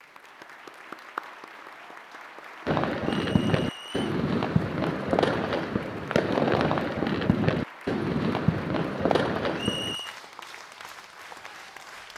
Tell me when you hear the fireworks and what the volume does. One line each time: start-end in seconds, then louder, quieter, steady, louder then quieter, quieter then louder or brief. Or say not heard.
2.6-9.9 steady.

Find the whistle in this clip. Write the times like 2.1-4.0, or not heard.
3.0-4.2, 9.6-10.2.